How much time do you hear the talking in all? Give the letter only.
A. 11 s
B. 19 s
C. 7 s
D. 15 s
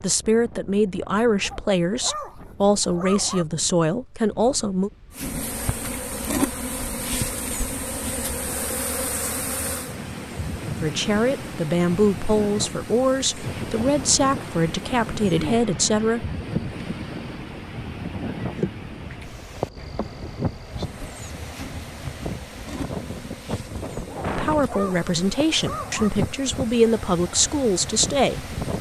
D.